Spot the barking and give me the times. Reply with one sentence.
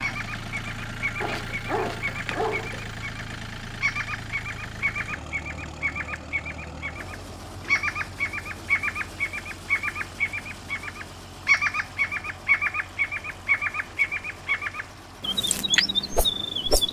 You can hear the barking from 1.2 to 3.0 s.